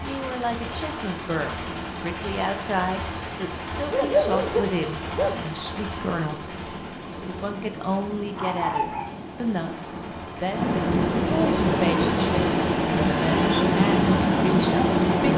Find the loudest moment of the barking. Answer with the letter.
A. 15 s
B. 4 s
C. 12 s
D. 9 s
B.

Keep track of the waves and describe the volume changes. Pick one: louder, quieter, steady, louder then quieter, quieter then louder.
louder.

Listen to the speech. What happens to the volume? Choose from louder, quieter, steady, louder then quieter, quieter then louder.
steady.